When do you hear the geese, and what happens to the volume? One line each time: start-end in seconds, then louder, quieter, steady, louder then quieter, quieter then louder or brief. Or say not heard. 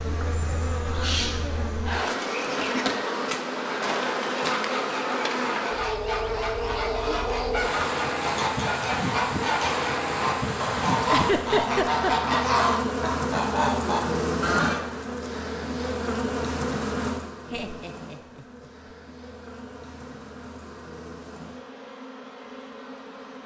3.9-14.8 louder.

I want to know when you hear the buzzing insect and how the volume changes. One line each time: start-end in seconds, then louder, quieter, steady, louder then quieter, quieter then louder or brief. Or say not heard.
0.0-23.4 quieter.